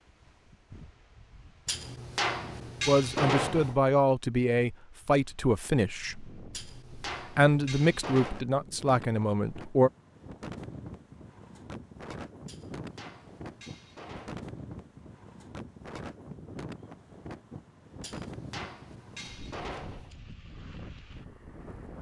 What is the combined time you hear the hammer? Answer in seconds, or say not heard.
8 s.